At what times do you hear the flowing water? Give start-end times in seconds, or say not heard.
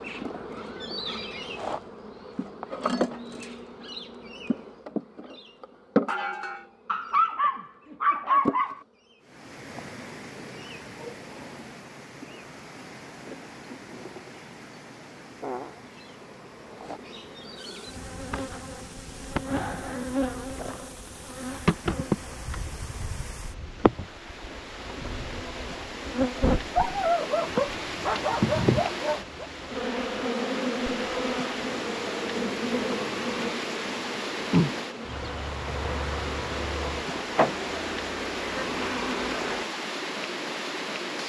9.2-41.2.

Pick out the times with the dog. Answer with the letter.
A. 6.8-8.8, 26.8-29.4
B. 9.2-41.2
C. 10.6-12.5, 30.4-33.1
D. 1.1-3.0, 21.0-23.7
A.